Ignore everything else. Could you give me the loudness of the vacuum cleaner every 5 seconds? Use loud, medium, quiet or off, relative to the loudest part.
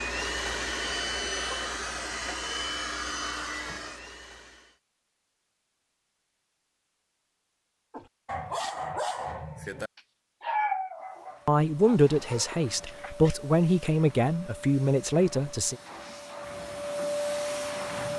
loud, off, quiet, loud.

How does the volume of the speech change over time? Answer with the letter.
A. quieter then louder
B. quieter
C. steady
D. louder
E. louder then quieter
C.